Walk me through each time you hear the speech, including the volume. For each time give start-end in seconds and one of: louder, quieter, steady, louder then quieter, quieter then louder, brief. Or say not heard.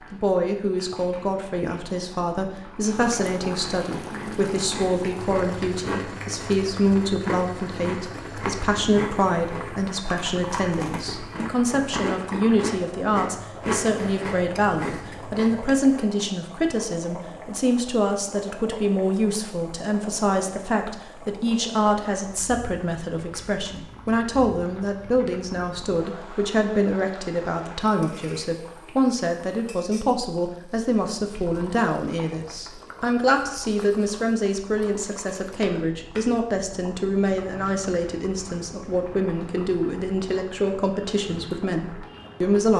0.1-42.7 steady.